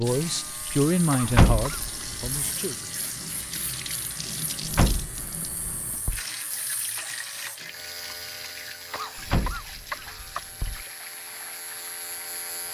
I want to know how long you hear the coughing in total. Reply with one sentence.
You can hear the coughing for 3 seconds altogether.